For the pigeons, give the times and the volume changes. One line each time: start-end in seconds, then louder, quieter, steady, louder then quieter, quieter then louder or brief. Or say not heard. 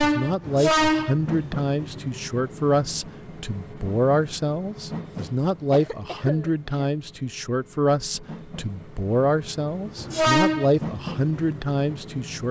not heard.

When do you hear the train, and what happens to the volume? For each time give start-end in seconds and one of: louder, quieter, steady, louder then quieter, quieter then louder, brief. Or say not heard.
0.0-12.4 quieter then louder.